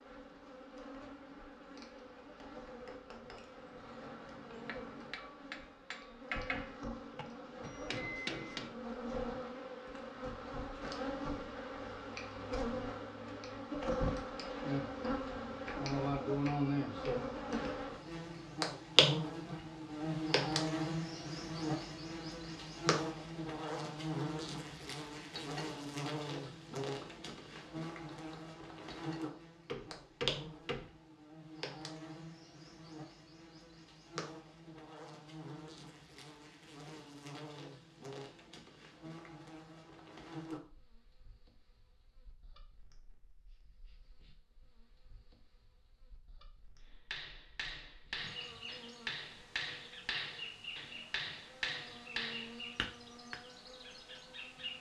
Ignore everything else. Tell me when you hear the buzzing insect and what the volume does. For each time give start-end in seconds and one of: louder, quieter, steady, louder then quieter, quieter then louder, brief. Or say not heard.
0.0-54.7 louder then quieter.